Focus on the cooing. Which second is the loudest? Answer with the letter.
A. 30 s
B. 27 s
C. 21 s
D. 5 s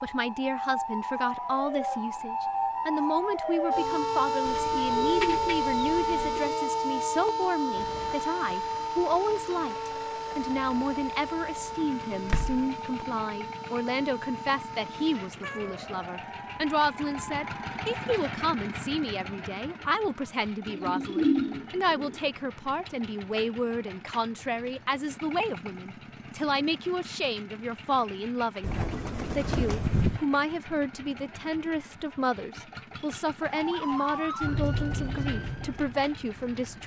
C.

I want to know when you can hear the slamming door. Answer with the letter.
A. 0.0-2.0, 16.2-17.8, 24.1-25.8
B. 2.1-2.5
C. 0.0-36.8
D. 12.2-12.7
D.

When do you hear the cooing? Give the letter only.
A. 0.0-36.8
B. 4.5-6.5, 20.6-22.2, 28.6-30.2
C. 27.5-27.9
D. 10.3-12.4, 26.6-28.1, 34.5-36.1
B.